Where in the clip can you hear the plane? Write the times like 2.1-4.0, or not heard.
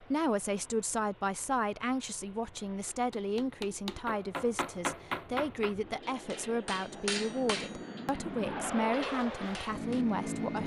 0.0-10.6.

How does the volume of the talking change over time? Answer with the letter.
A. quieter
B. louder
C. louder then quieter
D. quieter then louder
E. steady
E.